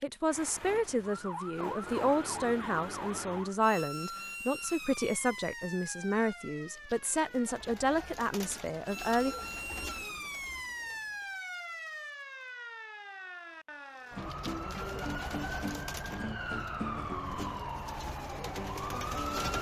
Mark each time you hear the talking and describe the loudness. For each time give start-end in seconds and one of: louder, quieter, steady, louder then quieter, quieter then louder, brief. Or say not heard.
0.0-9.3 steady.